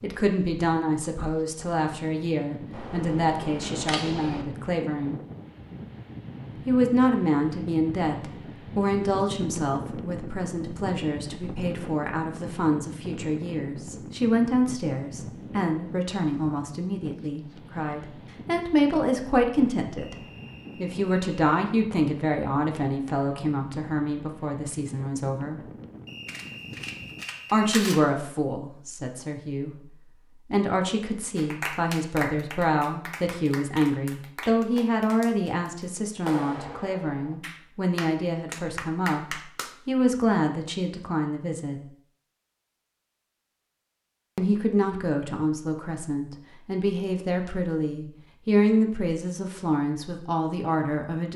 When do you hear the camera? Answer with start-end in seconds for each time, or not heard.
2.7-4.5, 26.2-28.0.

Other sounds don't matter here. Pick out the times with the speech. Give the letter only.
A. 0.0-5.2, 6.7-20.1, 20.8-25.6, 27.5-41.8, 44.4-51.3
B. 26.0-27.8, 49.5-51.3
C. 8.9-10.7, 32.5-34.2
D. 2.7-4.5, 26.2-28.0
A.